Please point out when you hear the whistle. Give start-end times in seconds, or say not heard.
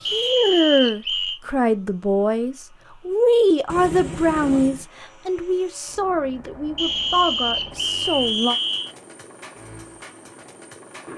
0.1-1.4, 6.8-8.9.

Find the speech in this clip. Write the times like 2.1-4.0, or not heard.
0.1-8.6.